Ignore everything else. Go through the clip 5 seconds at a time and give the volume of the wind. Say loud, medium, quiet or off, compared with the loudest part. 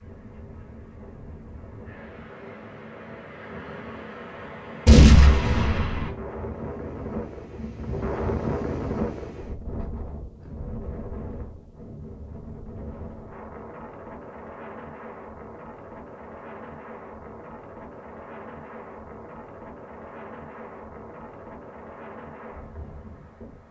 medium, loud, medium, medium, medium.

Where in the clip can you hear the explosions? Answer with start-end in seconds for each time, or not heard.
4.8-6.1.